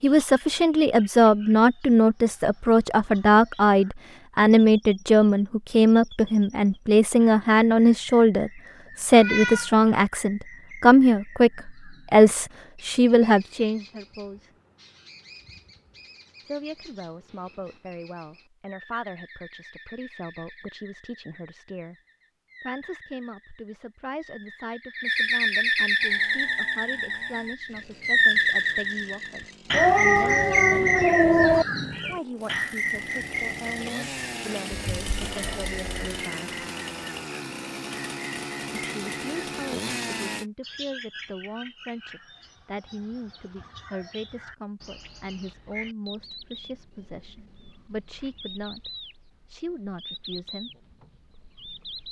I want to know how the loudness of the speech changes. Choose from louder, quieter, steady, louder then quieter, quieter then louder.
quieter.